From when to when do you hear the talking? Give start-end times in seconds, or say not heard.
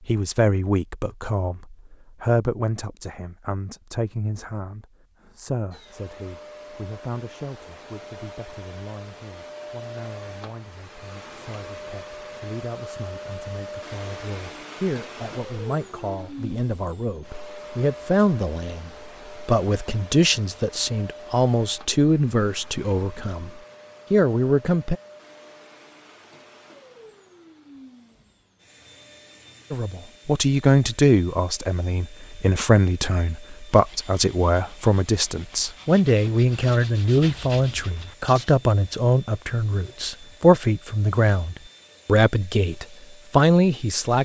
0.1-24.9, 29.7-44.2.